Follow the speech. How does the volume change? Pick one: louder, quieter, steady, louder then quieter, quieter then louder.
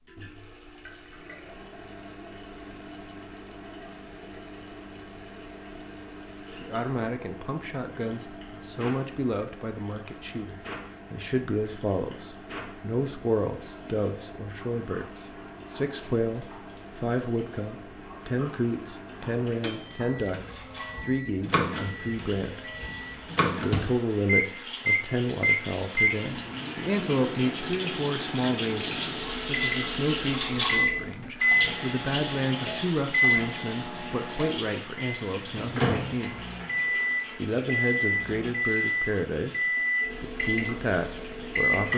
steady.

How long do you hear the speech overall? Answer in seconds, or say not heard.
35 s.